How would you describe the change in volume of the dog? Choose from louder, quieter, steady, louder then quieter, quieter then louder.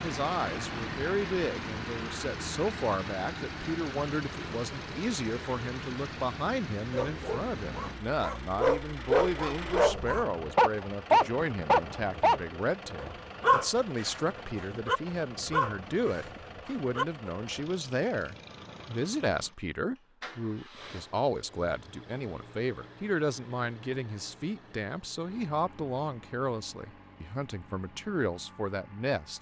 louder then quieter.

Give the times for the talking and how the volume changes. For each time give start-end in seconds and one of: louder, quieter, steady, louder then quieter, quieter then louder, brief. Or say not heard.
0.0-29.3 steady.